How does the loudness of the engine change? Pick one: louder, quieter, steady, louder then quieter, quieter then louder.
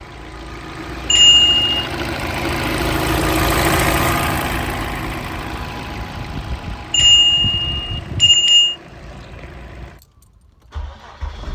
louder then quieter.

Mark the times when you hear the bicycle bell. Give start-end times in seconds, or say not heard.
1.1-1.8, 6.9-8.8.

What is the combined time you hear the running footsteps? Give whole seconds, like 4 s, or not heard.
not heard.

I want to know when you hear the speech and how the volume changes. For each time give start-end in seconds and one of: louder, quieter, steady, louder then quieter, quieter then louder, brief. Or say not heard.
not heard.